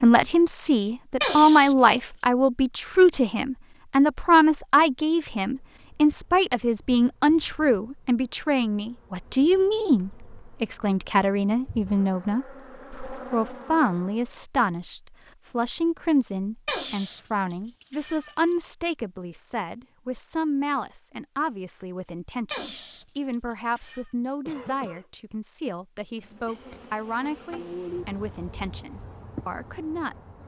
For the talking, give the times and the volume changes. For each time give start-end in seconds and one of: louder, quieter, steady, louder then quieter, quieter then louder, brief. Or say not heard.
0.0-30.1 quieter.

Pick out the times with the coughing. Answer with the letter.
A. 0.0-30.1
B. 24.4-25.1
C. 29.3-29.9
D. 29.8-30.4
B.